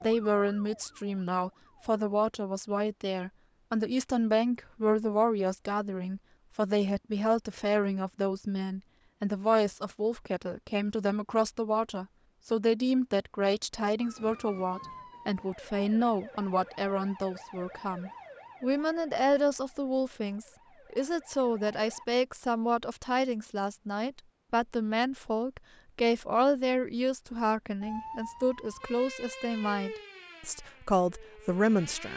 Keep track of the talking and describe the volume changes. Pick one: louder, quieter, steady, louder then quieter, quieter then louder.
steady.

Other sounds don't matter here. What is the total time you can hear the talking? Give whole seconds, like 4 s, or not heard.
32 s.